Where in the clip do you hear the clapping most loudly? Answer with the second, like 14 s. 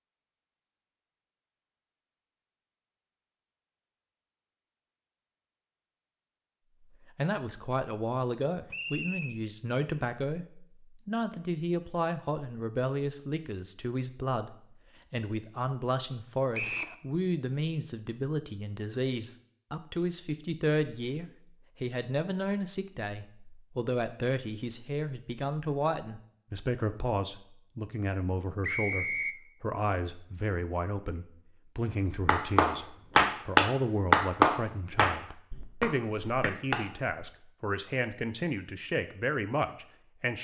34 s.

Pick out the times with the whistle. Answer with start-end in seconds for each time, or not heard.
8.7-9.3, 16.5-16.9, 28.6-29.4.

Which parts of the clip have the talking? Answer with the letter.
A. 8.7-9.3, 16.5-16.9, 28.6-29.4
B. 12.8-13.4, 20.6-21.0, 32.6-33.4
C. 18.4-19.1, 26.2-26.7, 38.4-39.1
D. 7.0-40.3
D.